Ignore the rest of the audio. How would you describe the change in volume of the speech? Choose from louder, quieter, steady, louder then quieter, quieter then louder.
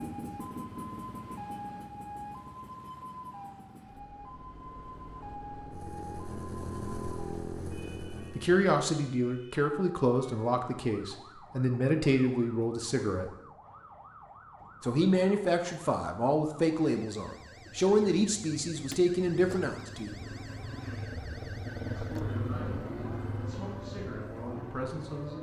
quieter.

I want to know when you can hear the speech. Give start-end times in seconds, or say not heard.
8.3-13.3, 14.8-20.1, 21.9-25.3.